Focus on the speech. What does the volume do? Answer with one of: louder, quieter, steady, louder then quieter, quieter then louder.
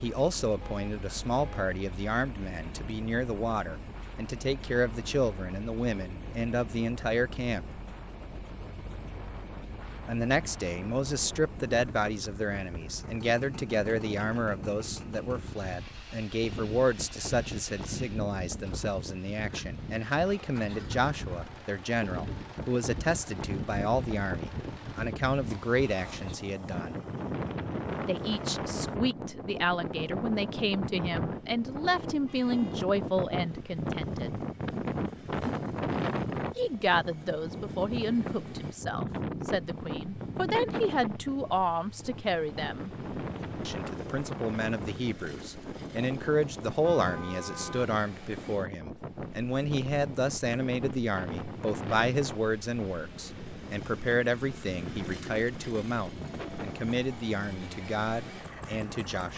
steady.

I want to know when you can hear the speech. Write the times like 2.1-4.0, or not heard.
0.0-7.7, 10.1-26.9, 28.1-34.4, 36.5-42.9, 43.6-59.3.